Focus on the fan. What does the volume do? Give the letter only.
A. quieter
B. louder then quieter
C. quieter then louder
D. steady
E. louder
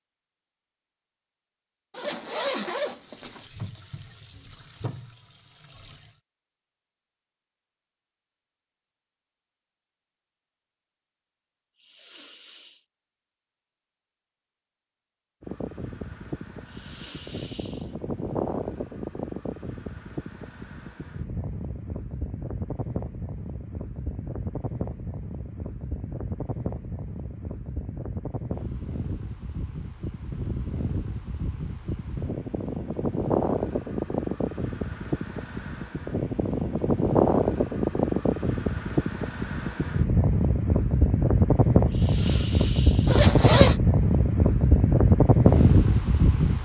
E.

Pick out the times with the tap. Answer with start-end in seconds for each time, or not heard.
3.0-6.2.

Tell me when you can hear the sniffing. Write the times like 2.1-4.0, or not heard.
11.8-12.8, 16.6-17.9, 41.9-43.3.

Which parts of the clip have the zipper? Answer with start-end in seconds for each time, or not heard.
1.9-3.5, 43.0-43.8.